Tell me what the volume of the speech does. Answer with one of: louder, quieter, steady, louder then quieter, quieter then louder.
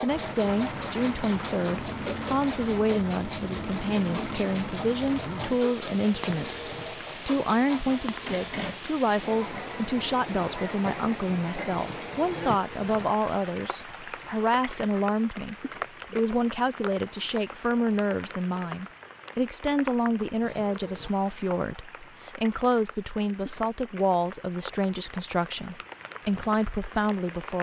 steady.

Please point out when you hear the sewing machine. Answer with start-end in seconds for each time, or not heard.
0.0-8.8.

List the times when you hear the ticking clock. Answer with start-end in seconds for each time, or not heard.
not heard.